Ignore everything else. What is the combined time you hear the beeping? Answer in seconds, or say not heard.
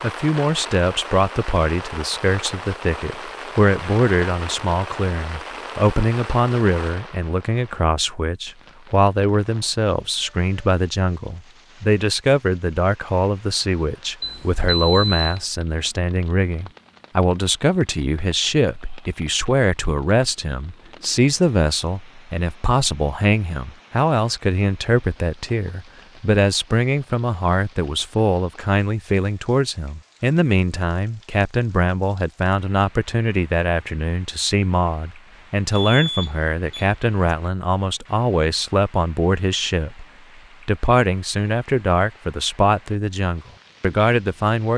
3 s.